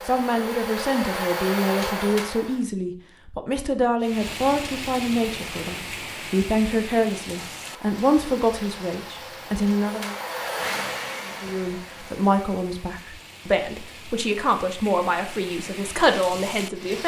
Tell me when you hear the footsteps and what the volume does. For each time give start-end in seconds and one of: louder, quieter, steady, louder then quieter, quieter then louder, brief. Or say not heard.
not heard.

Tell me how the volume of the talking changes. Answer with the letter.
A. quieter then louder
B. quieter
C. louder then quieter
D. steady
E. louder
D.